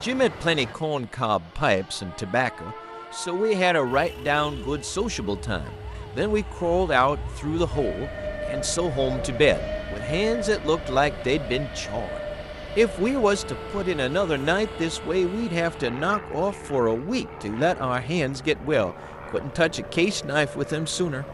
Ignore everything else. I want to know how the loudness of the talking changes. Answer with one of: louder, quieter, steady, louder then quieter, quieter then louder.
steady.